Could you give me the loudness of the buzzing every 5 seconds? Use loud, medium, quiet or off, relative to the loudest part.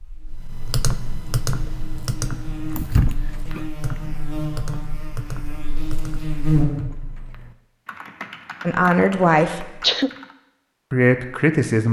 medium, loud, off.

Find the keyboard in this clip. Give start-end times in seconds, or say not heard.
0.4-10.3.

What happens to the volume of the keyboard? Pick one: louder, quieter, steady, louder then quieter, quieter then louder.
quieter.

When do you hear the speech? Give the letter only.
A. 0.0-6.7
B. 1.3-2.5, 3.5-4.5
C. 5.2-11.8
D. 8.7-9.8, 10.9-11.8
D.